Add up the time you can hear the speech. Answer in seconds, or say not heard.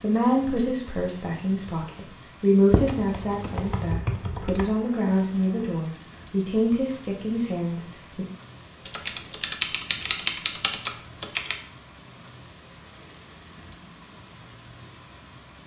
8 s.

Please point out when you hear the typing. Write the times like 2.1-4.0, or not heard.
2.7-4.7, 8.8-11.6.